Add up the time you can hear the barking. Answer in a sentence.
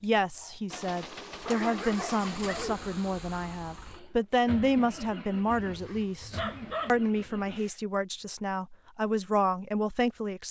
You can hear the barking for 3 seconds altogether.